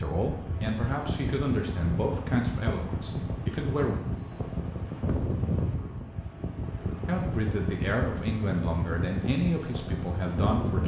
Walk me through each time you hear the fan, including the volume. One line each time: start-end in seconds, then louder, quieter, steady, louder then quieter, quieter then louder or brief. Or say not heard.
0.0-10.8 steady.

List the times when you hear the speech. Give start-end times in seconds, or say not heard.
0.0-4.0, 7.0-10.8.